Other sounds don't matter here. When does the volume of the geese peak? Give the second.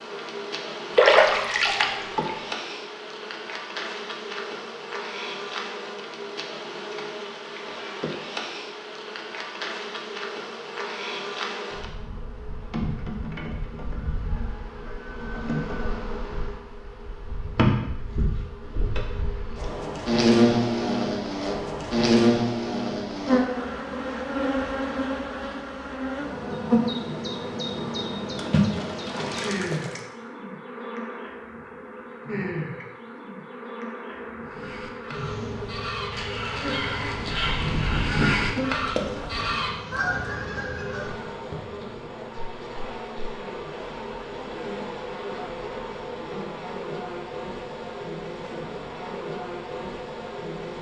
38 s.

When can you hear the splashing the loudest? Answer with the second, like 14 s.
1 s.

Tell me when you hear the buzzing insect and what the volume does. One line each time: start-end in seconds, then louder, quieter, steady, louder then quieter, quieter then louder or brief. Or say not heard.
0.0-50.7 louder then quieter.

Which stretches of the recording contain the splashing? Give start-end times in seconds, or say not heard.
0.9-2.3, 28.4-30.0, 38.9-39.4.